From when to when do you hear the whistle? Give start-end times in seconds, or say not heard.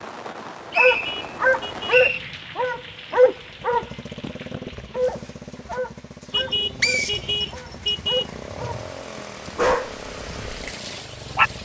0.3-2.2, 6.8-7.9.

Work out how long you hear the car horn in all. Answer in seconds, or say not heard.
4 s.